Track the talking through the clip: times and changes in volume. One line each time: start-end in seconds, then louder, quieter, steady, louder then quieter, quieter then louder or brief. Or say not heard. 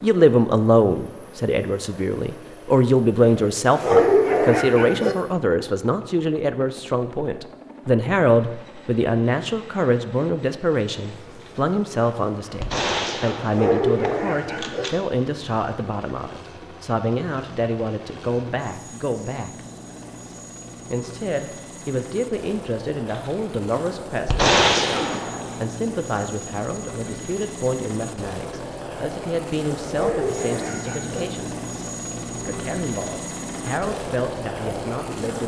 0.0-19.6 quieter
20.9-31.6 steady
32.5-35.4 brief.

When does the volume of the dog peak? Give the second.
4 s.